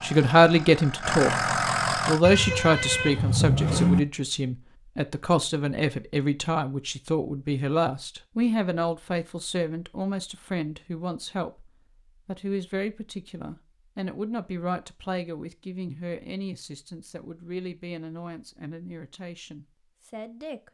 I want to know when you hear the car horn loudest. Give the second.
4 s.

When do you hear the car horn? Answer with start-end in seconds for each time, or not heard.
2.2-4.0.